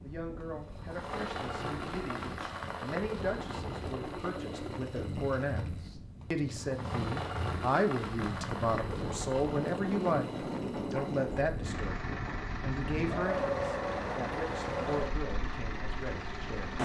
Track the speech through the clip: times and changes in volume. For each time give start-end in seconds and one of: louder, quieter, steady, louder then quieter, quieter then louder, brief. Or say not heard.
0.0-16.8 louder then quieter.